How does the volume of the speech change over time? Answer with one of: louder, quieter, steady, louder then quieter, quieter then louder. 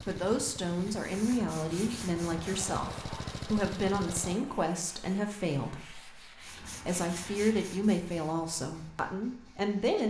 steady.